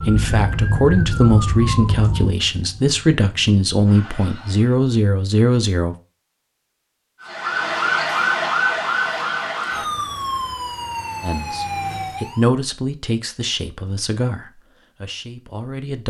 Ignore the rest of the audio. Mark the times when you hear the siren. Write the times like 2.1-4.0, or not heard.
0.0-4.8, 7.2-12.5.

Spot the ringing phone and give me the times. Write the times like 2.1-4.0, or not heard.
not heard.